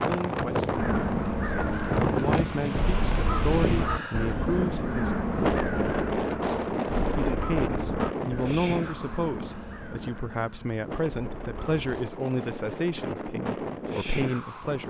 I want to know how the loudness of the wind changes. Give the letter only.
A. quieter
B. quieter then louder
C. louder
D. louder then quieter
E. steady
B.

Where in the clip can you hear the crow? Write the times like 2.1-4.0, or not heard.
0.7-11.8.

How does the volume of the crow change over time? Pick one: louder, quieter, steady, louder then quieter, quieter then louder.
quieter.